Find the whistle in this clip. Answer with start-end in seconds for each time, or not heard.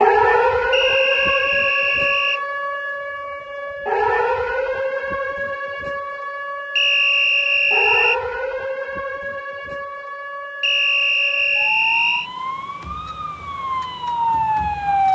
0.7-2.4, 6.8-8.2, 10.6-12.3.